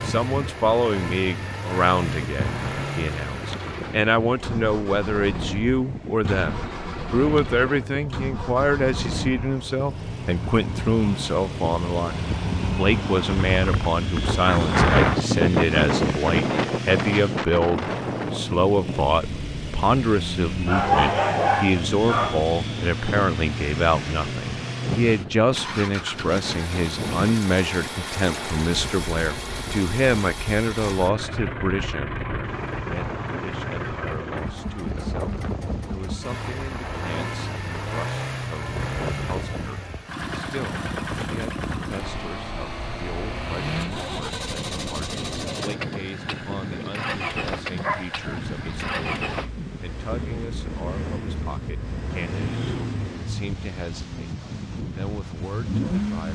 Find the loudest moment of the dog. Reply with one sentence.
The loudest moment of the dog is at 21 seconds.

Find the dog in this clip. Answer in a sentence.
You can hear the dog from 20.6 to 22.4 s and from 47.8 to 49.5 s.